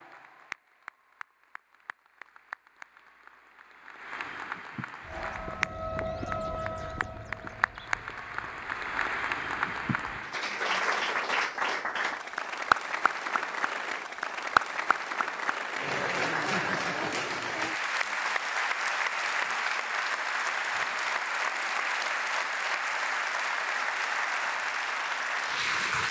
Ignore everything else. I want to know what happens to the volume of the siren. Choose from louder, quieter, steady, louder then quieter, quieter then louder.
quieter.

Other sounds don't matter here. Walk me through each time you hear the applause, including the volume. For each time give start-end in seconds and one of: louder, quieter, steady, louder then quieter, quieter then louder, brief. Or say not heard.
0.0-26.0 louder.